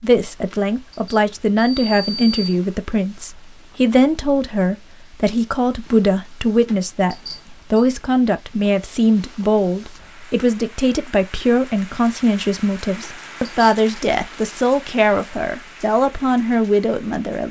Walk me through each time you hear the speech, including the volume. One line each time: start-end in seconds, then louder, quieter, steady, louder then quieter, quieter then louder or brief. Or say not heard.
0.0-17.4 steady.